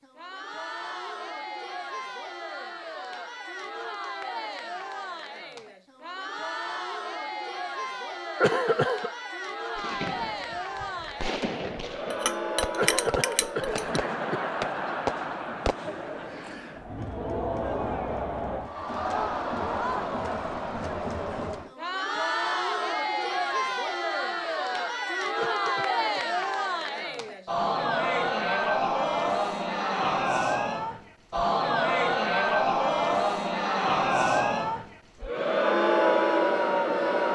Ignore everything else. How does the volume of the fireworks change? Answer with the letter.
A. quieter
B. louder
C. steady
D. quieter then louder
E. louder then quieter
B.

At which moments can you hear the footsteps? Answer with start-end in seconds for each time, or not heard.
not heard.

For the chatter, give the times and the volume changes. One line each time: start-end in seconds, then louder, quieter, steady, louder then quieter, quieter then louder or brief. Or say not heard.
0.0-37.3 louder.